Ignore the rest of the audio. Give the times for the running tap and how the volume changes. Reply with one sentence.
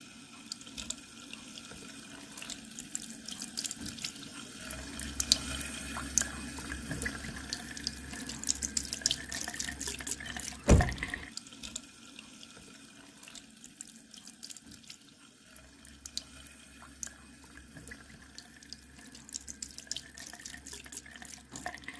You can hear the running tap from 0.0 to 21.9 s, getting louder then quieter.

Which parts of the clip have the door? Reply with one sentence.
The door can be heard from 10.2 to 11.1 s.